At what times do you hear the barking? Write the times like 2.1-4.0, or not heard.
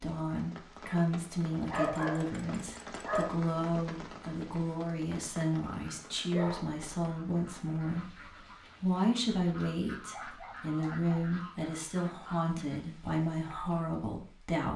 1.7-3.4, 6.3-6.8, 10.1-11.3.